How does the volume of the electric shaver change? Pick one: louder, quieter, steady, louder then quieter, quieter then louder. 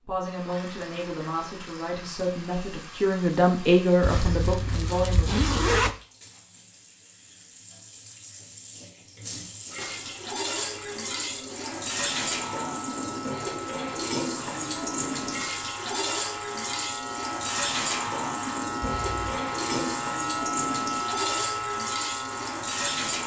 louder.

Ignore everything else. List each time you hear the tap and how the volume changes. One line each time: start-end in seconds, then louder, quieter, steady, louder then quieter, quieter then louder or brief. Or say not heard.
0.1-23.2 louder.